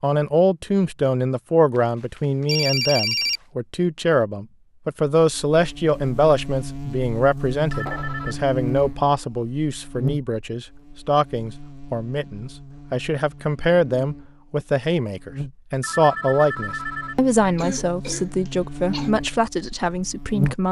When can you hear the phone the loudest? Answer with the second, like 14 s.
3 s.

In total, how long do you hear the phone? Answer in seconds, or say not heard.
4 s.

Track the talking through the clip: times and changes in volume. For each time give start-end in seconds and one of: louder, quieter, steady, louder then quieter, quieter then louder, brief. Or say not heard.
0.0-20.6 steady.